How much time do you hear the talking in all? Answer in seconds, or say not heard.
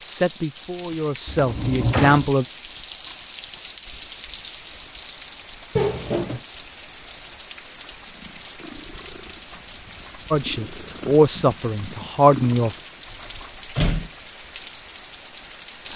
5 s.